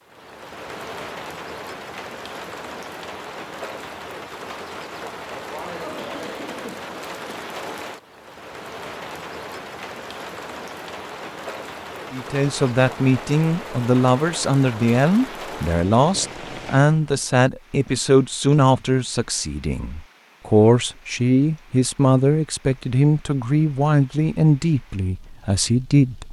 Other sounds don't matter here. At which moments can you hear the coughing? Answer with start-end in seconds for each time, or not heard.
5.3-7.4.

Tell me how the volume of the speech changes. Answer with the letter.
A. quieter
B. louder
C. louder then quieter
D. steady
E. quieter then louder
D.